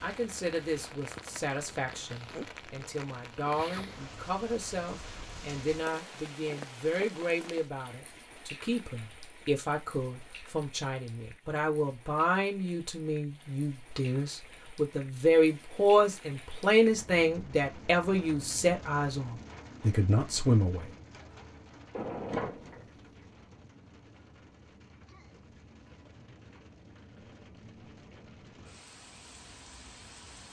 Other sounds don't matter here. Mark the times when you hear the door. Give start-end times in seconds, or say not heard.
21.9-22.9.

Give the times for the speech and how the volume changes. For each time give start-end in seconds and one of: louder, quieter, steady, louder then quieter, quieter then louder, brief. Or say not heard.
0.0-20.9 louder.